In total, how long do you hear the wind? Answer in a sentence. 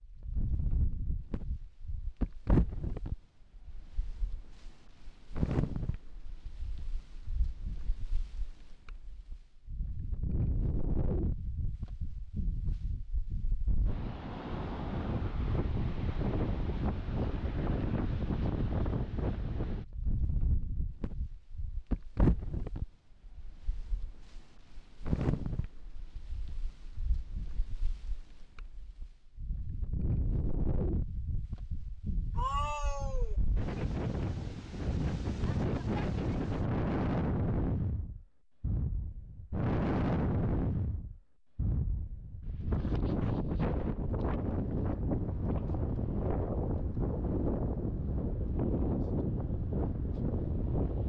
The wind can be heard for 51 seconds in total.